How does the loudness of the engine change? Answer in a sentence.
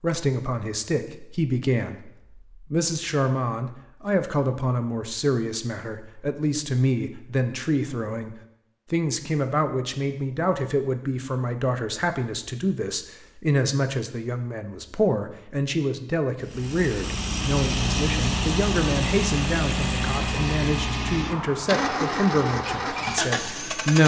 The loudness of the engine stays about the same.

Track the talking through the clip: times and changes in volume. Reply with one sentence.
The talking can be heard from 0.0 to 24.0 s, at a steady volume.